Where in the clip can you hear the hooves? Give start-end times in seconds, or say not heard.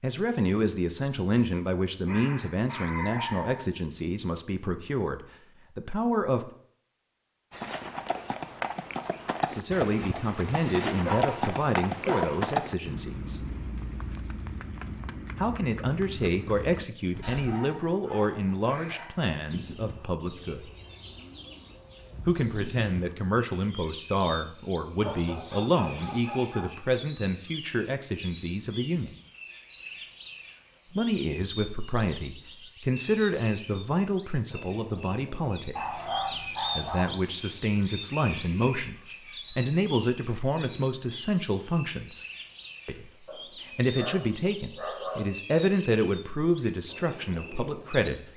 7.5-17.4.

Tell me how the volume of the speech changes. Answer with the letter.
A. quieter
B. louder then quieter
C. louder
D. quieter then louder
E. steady
E.